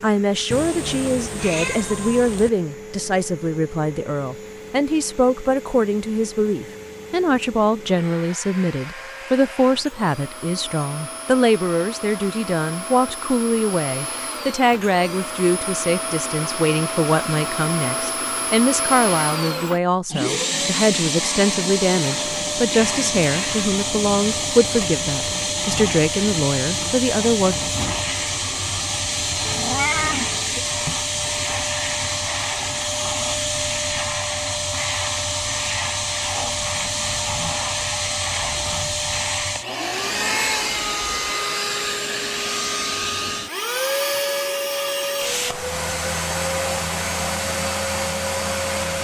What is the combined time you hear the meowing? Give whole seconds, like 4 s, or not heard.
3 s.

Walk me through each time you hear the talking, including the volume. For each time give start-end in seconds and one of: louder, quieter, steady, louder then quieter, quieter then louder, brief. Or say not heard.
0.0-27.6 steady.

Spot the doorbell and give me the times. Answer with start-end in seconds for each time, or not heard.
not heard.